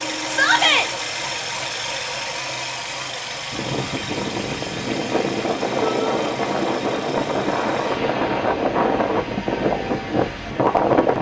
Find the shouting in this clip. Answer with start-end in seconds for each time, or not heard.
0.2-0.9, 5.8-6.2.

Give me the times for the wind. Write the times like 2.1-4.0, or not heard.
3.5-11.1.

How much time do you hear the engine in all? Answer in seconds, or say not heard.
11 s.